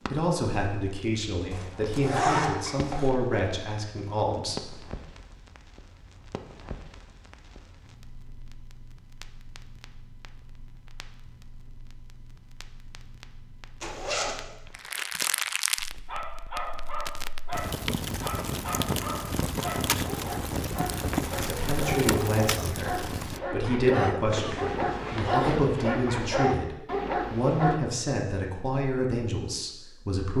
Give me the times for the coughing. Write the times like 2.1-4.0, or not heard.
23.9-25.8.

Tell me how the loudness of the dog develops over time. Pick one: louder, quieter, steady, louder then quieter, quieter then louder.
louder.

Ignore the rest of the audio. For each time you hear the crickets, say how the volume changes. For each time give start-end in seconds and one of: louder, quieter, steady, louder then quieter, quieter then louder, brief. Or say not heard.
not heard.